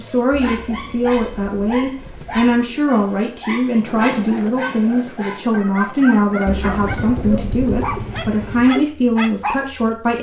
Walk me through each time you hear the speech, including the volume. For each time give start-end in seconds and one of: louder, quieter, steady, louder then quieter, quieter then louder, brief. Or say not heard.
0.0-10.1 steady.